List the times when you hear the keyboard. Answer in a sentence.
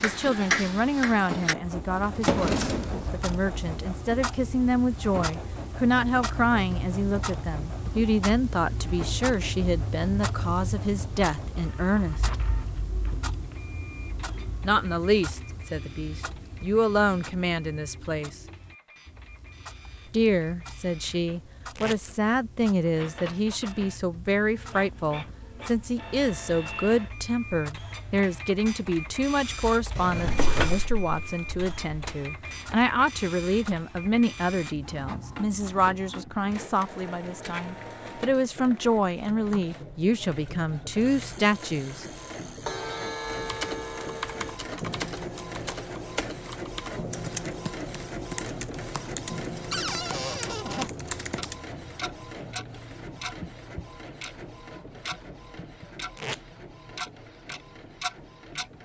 The keyboard can be heard from 43.3 to 51.5 s.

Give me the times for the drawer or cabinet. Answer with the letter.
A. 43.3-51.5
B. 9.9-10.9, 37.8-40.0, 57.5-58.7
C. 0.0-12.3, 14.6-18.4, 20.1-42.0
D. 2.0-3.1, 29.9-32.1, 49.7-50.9
D.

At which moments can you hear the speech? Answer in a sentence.
You can hear the speech from 0.0 to 12.3 s, from 14.6 to 18.4 s and from 20.1 to 42.0 s.